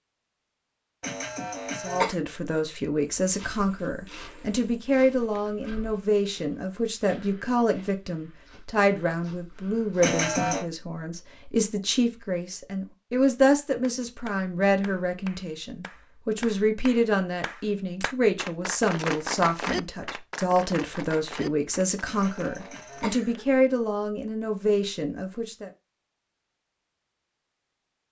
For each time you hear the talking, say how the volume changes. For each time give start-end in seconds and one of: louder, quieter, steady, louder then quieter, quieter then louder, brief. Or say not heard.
1.8-25.7 steady.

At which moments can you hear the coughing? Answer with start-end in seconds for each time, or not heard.
1.0-2.2, 10.0-10.7, 22.1-23.4.